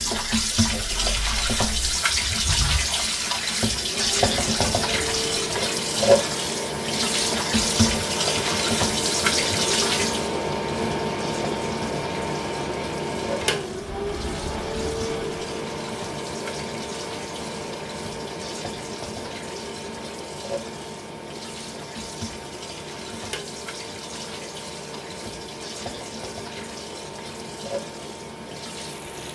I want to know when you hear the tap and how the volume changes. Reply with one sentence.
You can hear the tap from 0.0 to 29.3 s, getting quieter.